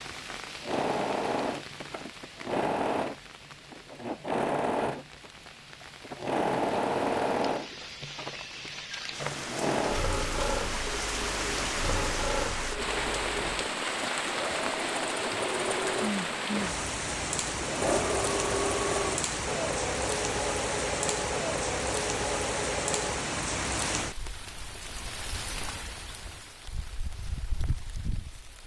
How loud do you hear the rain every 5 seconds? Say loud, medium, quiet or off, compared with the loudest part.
quiet, medium, loud, loud, loud, medium.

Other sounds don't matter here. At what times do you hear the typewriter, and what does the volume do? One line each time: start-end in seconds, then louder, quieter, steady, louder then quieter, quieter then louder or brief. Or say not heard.
not heard.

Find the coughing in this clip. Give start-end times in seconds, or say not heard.
not heard.